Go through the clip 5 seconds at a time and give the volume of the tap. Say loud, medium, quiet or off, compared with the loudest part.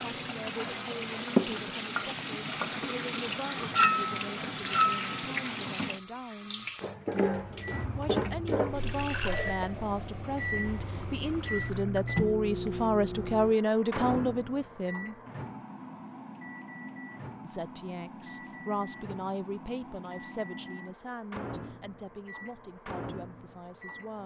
loud, loud, quiet, off, off.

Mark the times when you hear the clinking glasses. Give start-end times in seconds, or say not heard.
3.8-5.1.